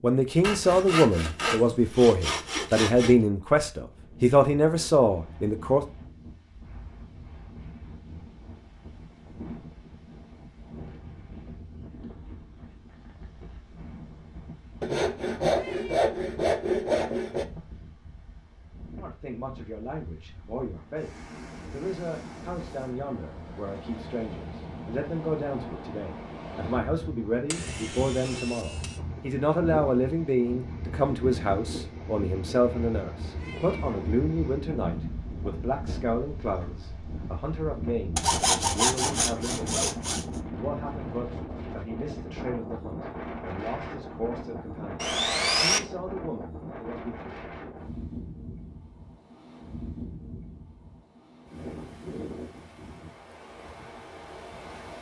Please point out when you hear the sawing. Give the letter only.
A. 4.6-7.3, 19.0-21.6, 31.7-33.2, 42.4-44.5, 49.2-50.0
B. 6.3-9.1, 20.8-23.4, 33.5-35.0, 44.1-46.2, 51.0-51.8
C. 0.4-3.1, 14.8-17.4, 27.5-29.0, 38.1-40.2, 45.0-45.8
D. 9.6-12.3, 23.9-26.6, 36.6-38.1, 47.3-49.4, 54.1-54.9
C.